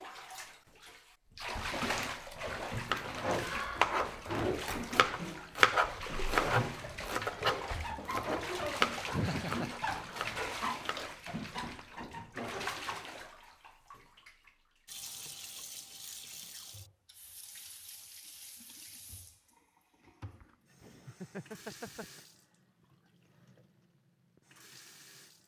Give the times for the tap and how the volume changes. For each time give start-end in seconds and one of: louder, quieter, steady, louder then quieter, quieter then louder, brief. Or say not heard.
0.0-25.4 quieter.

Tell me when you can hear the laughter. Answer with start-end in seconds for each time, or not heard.
9.1-9.7, 20.4-22.2.